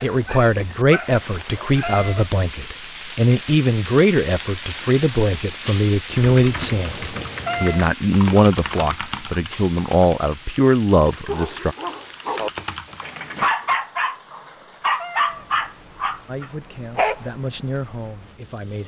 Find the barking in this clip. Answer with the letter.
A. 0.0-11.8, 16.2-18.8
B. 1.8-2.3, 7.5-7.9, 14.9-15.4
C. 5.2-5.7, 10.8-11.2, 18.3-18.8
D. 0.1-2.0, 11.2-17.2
D.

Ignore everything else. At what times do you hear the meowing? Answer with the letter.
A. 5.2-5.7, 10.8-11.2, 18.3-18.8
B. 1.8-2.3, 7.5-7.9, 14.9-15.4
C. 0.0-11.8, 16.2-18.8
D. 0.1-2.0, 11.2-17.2
B.